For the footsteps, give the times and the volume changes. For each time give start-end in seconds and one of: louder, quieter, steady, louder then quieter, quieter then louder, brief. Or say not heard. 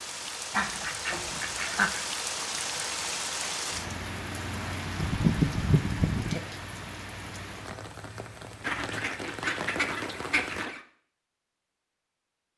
not heard.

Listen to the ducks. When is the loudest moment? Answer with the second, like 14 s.
5 s.